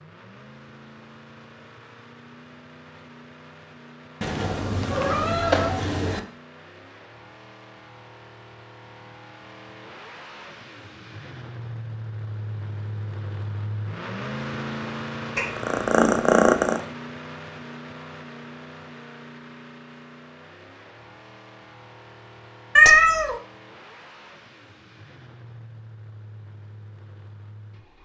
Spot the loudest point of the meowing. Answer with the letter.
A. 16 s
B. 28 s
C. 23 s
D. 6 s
C.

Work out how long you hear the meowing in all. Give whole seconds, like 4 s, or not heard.
4 s.